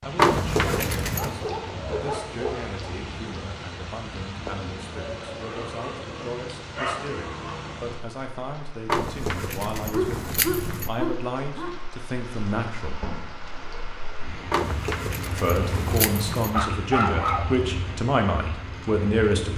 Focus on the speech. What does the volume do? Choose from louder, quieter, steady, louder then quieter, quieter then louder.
louder.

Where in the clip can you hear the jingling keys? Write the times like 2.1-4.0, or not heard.
0.1-1.4, 8.8-10.9, 14.5-16.5.